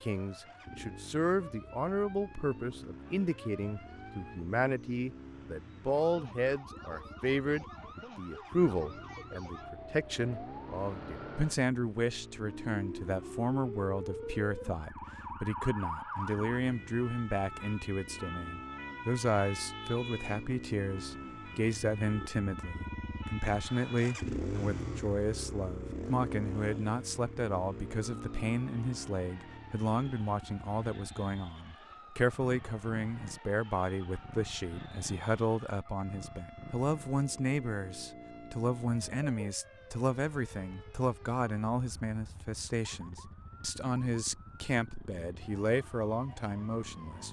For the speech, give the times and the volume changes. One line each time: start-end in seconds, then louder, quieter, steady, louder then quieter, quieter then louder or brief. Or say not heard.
0.0-47.2 steady.